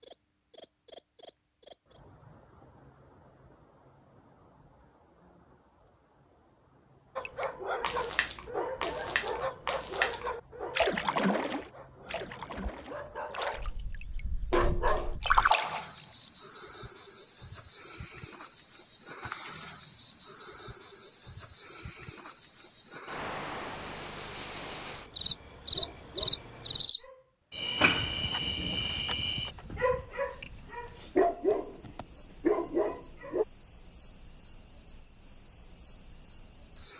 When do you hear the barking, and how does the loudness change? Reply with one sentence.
You can hear the barking from 7.2 to 15.2 s, getting quieter then louder; and from 25.6 to 33.5 s, getting louder.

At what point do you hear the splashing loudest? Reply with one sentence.
The volume of the splashing peaks at 15 seconds.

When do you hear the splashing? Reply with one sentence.
The splashing can be heard from 7.2 to 16.3 s.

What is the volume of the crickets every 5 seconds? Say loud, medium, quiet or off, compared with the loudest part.
medium, quiet, quiet, loud, loud, loud, loud, loud.